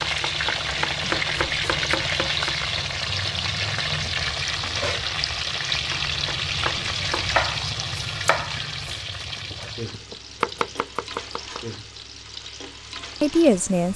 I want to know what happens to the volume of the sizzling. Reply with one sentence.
The volume of the sizzling goes down.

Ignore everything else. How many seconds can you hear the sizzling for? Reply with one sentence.
The sizzling can be heard for 14 seconds in total.